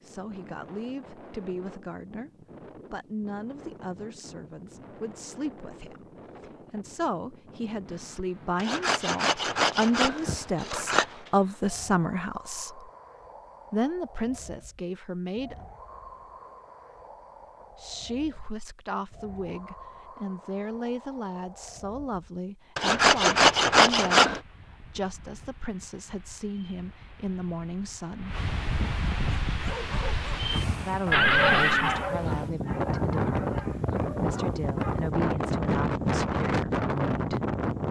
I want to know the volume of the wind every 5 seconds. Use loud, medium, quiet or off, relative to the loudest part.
quiet, quiet, quiet, quiet, quiet, medium, loud, loud.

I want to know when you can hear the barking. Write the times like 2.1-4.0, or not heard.
29.5-35.1.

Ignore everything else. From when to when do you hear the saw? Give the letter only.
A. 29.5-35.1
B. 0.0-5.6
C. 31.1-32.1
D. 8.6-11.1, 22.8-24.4
D.